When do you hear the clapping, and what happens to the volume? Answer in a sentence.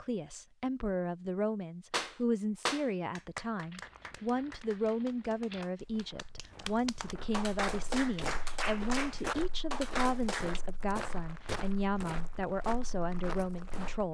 The clapping can be heard from 1.9 to 10.6 s, getting quieter then louder.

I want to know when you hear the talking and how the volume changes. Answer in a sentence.
You can hear the talking from 0.0 to 14.0 s, at a steady volume.